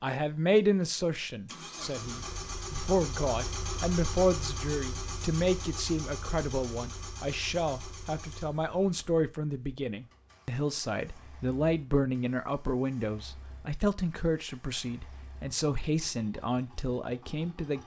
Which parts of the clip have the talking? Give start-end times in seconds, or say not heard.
0.0-17.8.